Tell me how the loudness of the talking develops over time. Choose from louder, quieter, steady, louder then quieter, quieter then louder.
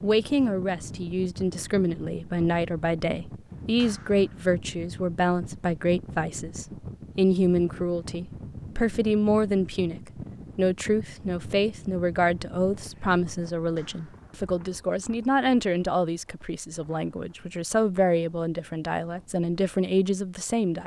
steady.